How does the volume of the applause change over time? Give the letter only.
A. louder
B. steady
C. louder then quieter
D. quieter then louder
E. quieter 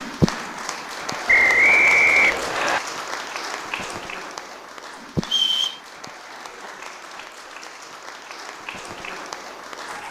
E.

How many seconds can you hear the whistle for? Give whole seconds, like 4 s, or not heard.
2 s.